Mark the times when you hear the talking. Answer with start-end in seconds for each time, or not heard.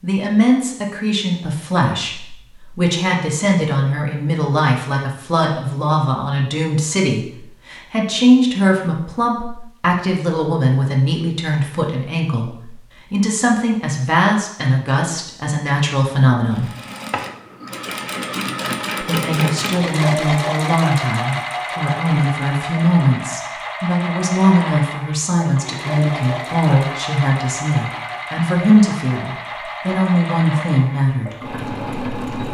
0.0-16.7, 19.0-31.4.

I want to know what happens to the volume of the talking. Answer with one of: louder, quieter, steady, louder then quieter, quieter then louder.
steady.